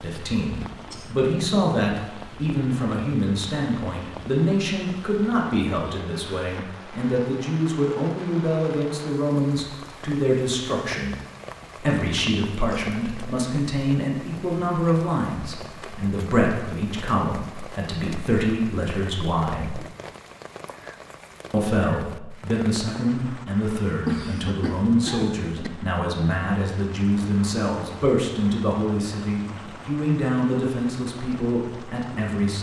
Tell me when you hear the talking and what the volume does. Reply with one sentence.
You can hear the talking from 0.0 to 19.8 s, at a steady volume; and from 21.5 to 32.5 s, at a steady volume.